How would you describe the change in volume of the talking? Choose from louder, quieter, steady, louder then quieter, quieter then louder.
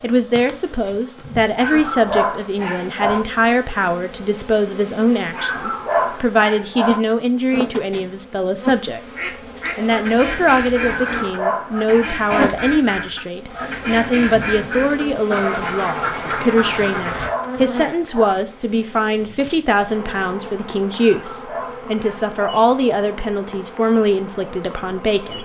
steady.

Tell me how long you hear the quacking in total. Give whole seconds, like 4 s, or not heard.
8 s.